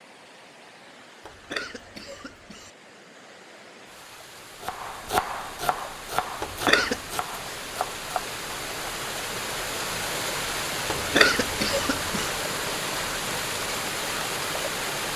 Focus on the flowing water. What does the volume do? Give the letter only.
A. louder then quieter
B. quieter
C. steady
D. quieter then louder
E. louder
E.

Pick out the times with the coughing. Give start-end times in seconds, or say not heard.
1.2-2.7, 6.4-7.0, 10.8-12.3.